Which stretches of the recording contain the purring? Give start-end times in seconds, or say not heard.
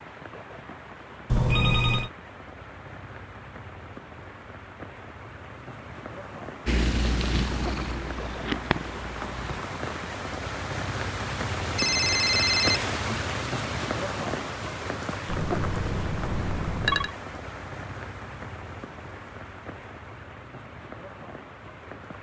6.7-9.6.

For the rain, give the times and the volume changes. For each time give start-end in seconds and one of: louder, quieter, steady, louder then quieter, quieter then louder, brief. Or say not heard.
0.0-22.1 louder then quieter.